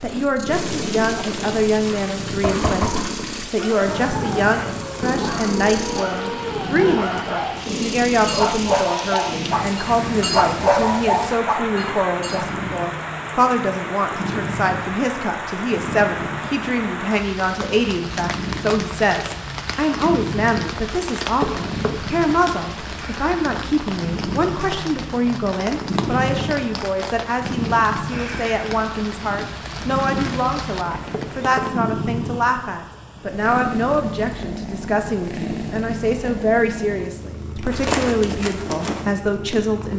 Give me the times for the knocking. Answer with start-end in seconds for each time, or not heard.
2.4-3.0, 21.4-22.1, 31.1-31.8.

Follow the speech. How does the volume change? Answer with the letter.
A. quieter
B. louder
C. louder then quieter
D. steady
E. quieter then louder
D.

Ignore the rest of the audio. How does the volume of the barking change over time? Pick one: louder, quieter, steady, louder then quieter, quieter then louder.
louder.